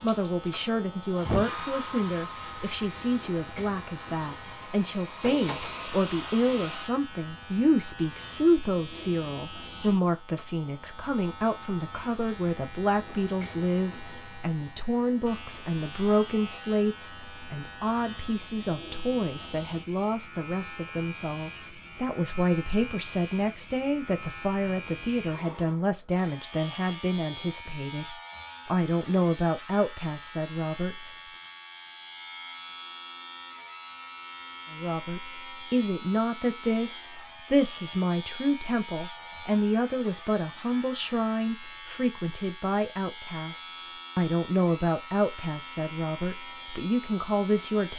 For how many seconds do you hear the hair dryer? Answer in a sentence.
You can hear the hair dryer for 7 seconds altogether.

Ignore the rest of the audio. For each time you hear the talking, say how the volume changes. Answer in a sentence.
The talking can be heard from 0.0 to 31.1 s, at a steady volume; and from 34.7 to 47.9 s, at a steady volume.